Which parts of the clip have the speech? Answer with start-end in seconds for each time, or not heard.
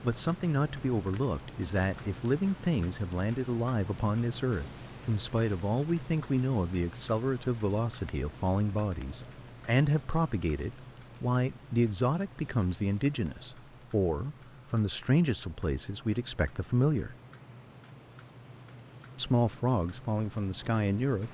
0.0-17.1, 19.1-21.2.